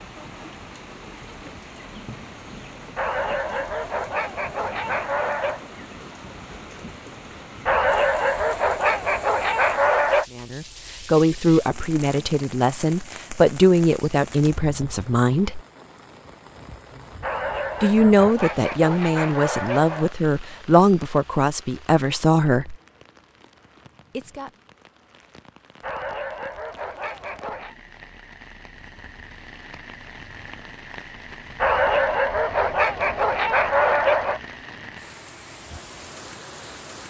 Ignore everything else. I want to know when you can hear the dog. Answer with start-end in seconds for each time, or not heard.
3.0-5.7, 7.7-10.2, 17.2-20.1, 25.8-27.8, 31.6-34.4.